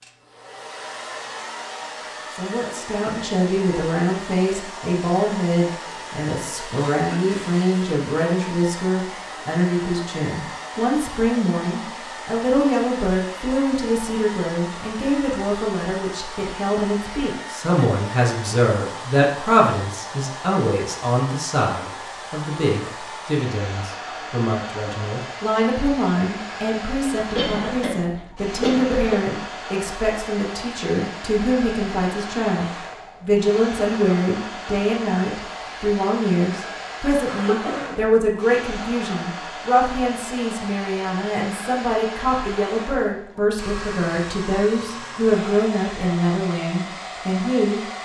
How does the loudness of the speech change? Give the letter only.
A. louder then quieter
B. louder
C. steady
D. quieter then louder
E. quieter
C.